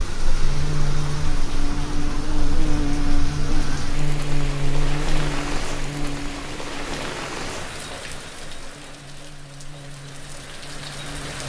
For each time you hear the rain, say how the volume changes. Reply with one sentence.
You can hear the rain from 0.0 to 11.4 s, getting quieter.